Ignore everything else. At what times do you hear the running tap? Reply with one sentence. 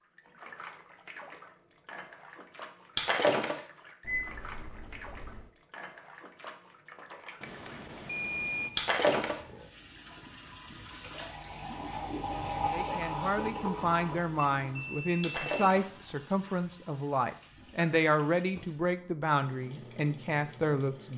You can hear the running tap from 0.0 to 21.1 s.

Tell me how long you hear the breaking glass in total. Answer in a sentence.
You can hear the breaking glass for 2 seconds altogether.